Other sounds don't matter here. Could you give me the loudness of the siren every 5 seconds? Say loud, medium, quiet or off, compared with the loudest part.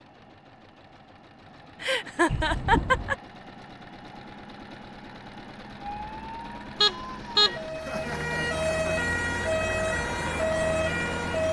off, loud, loud.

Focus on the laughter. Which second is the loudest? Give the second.
3 s.